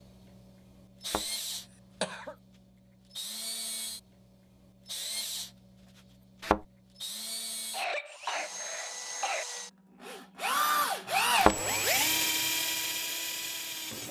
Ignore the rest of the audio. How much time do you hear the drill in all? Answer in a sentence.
The drill can be heard for 14 seconds in total.